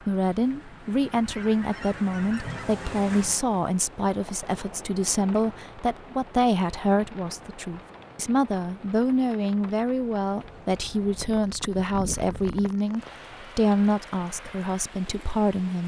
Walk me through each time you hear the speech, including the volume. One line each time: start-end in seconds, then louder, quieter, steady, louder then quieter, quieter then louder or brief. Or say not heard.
0.1-15.8 steady.